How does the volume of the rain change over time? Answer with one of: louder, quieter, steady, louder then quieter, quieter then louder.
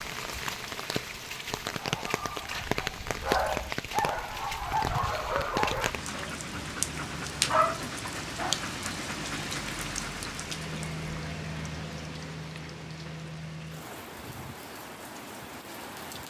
quieter.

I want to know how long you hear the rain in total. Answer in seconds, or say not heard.
16 s.